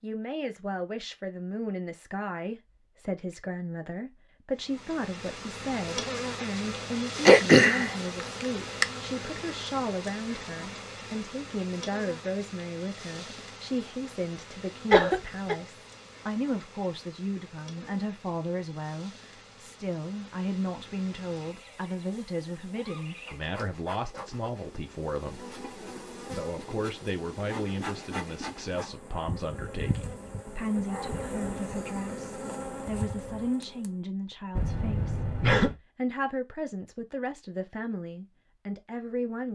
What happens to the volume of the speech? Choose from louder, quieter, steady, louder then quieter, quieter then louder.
steady.